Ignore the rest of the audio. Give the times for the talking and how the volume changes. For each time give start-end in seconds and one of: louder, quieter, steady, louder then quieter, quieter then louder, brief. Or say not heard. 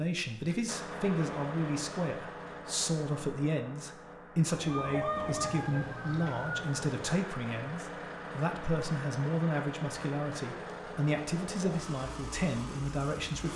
0.0-13.5 steady.